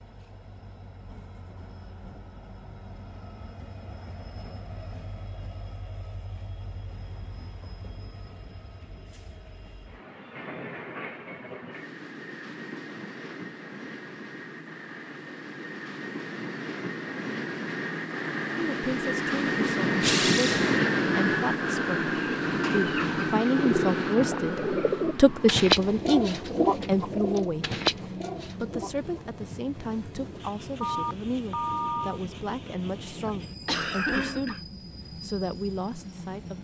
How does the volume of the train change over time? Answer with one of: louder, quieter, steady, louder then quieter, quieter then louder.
louder then quieter.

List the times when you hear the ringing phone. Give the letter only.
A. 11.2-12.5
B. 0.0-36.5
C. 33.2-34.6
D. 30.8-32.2
D.